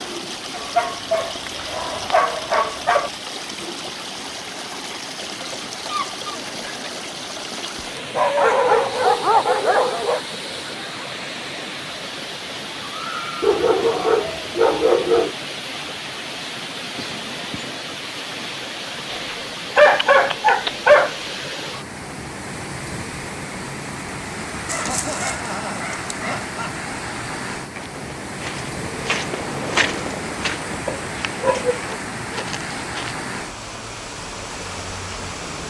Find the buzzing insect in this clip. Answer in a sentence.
The buzzing insect can't be heard in this clip.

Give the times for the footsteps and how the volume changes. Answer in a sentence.
You can hear the footsteps from 27.8 to 33.1 s, getting louder then quieter.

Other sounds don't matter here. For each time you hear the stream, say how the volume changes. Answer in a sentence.
The stream can be heard from 0.0 to 35.6 s, at a steady volume.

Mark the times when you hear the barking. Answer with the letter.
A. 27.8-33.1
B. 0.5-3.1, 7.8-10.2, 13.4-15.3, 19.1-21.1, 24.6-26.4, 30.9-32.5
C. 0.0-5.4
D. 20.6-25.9
B.